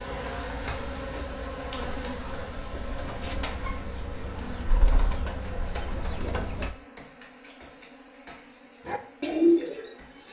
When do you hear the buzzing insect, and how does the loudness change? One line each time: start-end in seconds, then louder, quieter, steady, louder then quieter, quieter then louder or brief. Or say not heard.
0.0-10.2 quieter.